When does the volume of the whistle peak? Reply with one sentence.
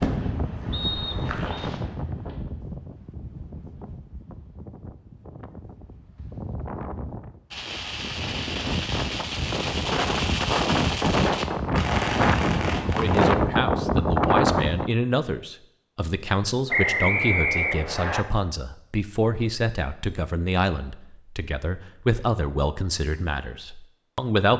The volume of the whistle peaks at 17 seconds.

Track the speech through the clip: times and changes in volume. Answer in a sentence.
You can hear the speech from 12.9 to 24.5 s, at a steady volume.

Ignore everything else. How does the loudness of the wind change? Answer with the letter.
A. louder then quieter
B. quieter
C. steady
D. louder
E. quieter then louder
E.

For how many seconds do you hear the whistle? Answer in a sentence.
You can hear the whistle for 2 seconds altogether.